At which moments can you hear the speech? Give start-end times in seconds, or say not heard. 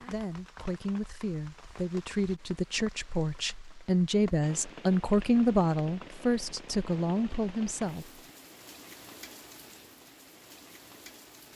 0.0-8.2.